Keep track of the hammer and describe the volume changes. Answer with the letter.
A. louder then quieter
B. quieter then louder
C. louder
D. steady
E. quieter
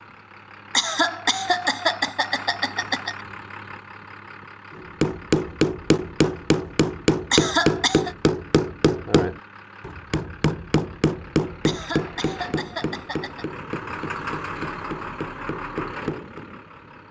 E.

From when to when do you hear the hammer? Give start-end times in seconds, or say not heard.
4.7-16.4.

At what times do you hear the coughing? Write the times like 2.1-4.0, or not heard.
0.7-3.1, 7.3-8.2, 11.7-13.4.